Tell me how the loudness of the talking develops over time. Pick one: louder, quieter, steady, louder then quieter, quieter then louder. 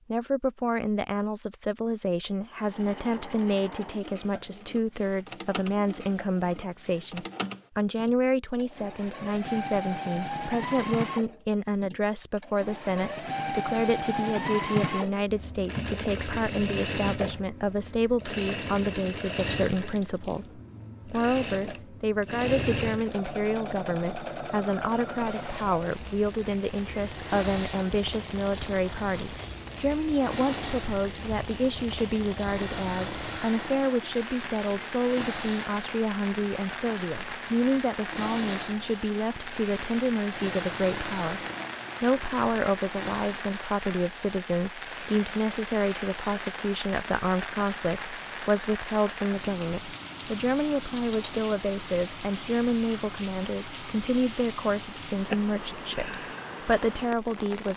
steady.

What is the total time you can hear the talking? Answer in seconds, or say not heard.
57 s.